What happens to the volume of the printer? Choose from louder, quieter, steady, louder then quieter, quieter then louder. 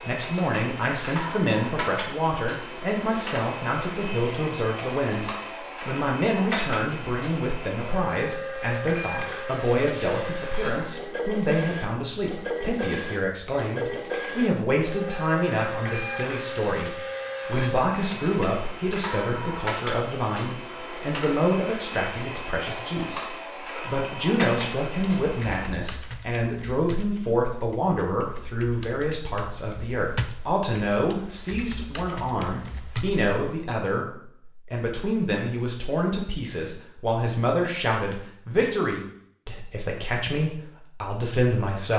steady.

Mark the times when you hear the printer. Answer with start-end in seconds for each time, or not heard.
0.0-25.7.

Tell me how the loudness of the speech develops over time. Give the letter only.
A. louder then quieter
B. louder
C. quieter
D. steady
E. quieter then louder
D.